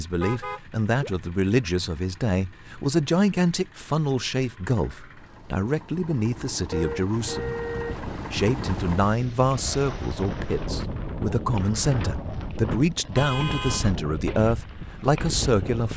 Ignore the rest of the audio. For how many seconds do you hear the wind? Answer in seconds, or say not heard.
8 s.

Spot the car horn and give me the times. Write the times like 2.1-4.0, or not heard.
0.2-1.1, 6.7-8.1, 13.2-13.9.